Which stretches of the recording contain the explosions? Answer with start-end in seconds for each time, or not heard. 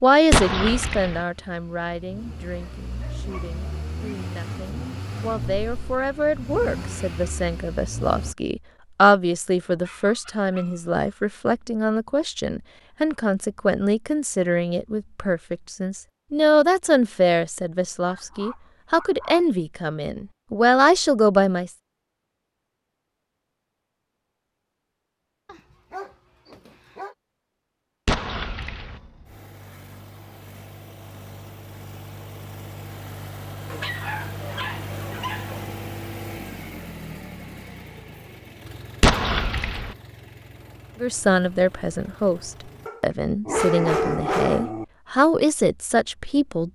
0.3-1.2, 28.1-29.0, 39.0-40.0.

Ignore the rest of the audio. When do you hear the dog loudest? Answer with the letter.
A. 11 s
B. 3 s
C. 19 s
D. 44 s
D.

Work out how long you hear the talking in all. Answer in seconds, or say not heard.
27 s.